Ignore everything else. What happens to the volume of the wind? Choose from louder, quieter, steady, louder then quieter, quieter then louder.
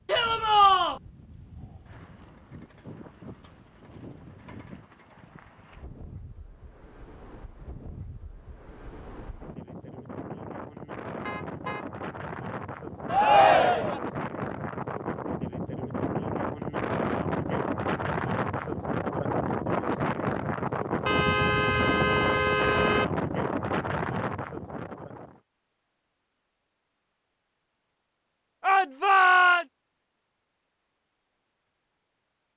louder.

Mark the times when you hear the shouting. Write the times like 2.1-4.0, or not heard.
0.1-1.0, 13.1-14.0, 28.6-29.6.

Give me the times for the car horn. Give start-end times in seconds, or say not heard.
11.2-11.9, 21.1-23.1.